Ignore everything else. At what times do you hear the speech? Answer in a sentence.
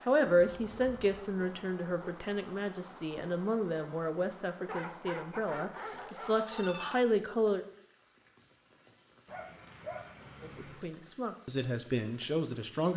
You can hear the speech from 0.1 to 7.7 s and from 10.4 to 12.9 s.